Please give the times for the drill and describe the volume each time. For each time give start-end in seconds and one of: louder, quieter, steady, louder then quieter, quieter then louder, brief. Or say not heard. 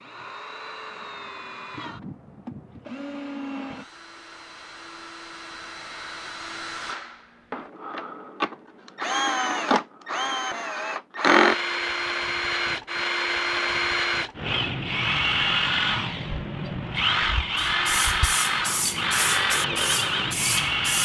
0.0-20.9 louder.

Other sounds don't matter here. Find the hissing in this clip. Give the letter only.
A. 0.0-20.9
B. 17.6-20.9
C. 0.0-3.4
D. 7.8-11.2
B.